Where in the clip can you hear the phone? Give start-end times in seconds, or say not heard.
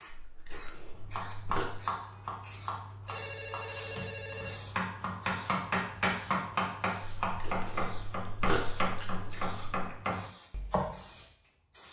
3.0-4.6.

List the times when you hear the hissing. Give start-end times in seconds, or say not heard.
0.0-11.8.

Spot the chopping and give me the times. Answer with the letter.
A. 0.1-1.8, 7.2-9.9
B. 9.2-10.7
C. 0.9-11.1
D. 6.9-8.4
C.